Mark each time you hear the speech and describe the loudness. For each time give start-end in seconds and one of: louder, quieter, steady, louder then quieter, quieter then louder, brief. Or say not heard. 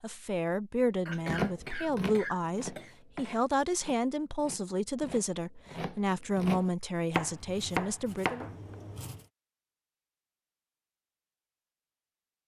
0.0-8.4 steady.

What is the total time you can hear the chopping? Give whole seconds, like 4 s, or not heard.
8 s.